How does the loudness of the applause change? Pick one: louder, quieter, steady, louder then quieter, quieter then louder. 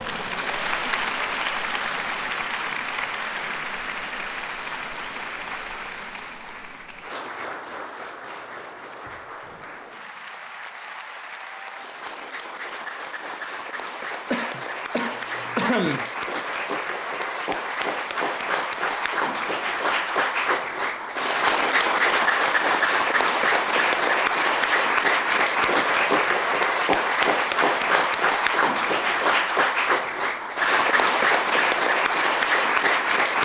quieter then louder.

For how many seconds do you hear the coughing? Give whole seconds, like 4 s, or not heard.
2 s.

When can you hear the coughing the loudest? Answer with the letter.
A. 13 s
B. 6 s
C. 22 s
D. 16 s
D.